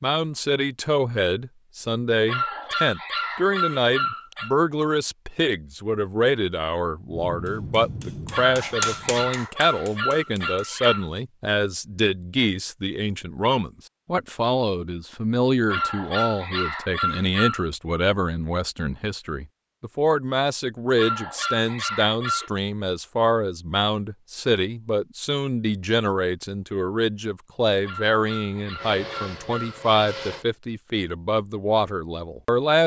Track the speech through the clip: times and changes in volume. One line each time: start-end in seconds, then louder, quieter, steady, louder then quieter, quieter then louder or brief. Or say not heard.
0.0-32.8 steady.